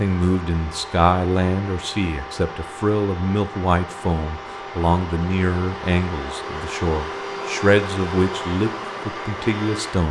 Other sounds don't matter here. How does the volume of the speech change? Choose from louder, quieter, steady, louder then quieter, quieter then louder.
steady.